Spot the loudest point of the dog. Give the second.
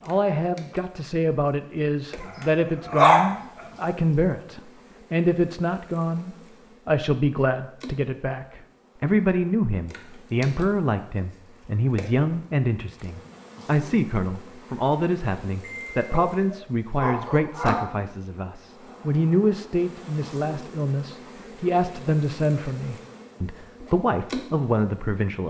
3 s.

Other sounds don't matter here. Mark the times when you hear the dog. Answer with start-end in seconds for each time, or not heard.
2.2-3.6, 15.6-17.9.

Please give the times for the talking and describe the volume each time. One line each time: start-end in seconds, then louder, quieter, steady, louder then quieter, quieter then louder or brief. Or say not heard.
0.0-25.4 steady.